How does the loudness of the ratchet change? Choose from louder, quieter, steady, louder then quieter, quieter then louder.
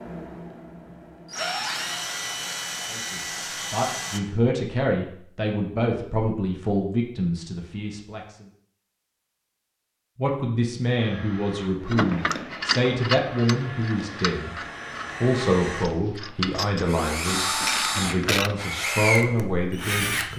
quieter then louder.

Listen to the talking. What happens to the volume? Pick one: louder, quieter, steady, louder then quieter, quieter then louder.
steady.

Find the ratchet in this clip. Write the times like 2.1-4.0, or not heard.
11.9-18.6.